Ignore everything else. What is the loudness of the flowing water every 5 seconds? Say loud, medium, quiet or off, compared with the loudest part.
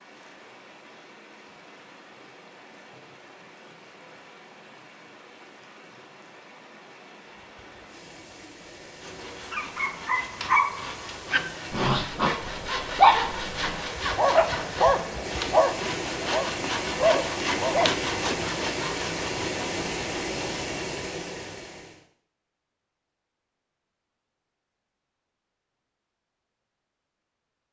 quiet, quiet, medium, loud, loud, off.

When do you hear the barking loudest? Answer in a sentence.
The loudest moment of the barking is at 13 seconds.